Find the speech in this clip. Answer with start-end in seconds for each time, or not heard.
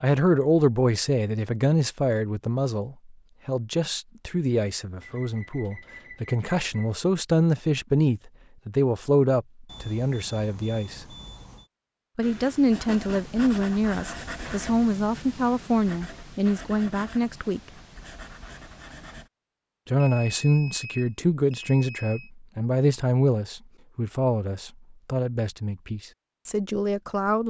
0.0-11.1, 12.2-17.6, 19.9-27.4.